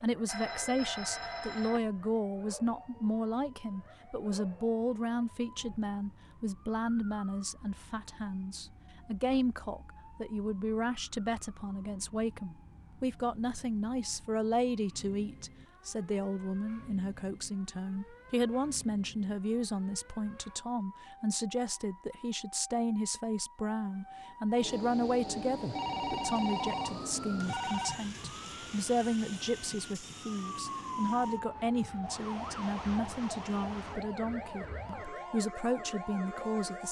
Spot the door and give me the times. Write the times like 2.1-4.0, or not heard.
not heard.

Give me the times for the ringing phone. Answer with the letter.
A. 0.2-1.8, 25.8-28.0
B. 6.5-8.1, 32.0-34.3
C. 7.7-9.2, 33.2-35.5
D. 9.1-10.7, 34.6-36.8
A.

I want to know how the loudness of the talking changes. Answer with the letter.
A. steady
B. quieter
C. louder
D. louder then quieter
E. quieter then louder
A.